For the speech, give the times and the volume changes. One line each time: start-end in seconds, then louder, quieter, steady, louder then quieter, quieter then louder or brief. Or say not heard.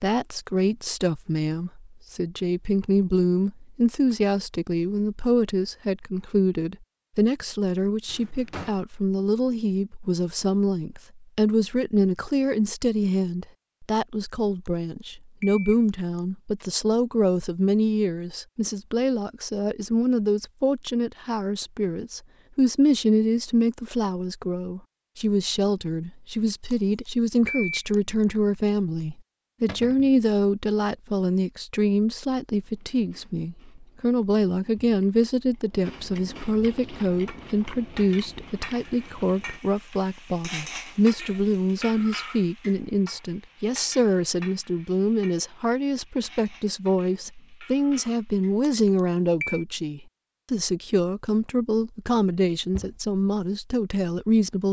0.0-54.6 steady.